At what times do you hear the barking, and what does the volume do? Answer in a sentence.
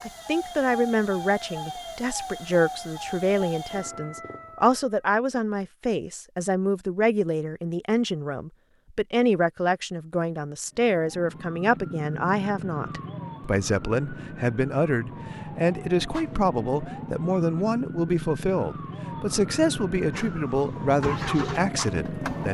You can't hear the barking here.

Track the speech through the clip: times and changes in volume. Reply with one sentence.
You can hear the speech from 0.0 to 22.4 s, at a steady volume.